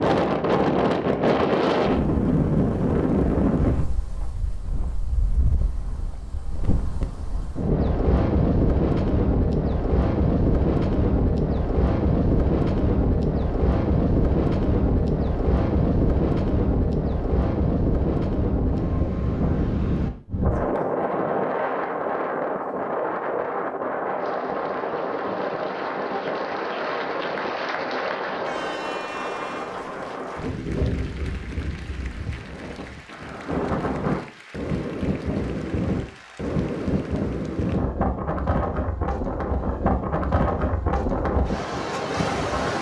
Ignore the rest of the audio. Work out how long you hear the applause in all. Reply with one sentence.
The applause can be heard for 14 seconds in total.